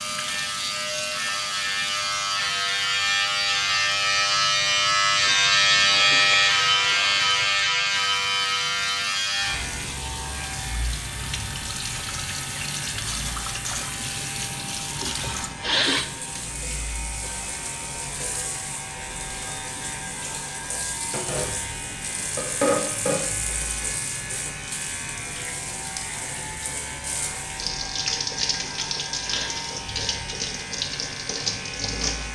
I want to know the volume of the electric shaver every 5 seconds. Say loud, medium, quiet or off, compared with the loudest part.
loud, loud, quiet, quiet, quiet, quiet, quiet.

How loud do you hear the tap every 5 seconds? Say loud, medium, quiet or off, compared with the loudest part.
medium, medium, loud, medium, loud, loud, loud.